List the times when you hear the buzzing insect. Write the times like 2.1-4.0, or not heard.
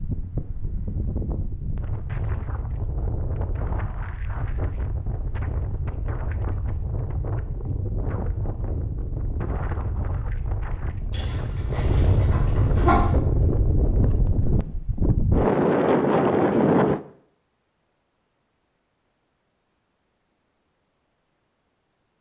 not heard.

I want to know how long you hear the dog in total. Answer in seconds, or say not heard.
2 s.